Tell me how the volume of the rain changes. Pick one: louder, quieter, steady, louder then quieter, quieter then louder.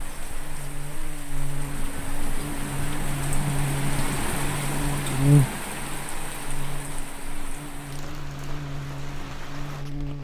louder then quieter.